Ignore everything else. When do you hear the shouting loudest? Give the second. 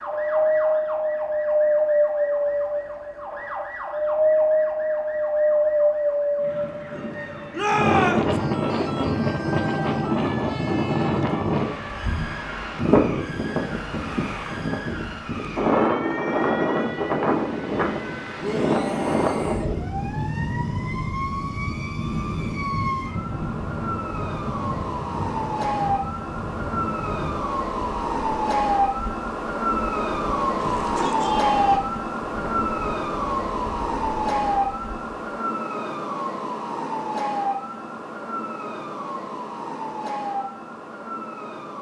8 s.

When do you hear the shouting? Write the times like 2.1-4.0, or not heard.
7.5-8.3, 18.4-19.7, 30.6-31.8.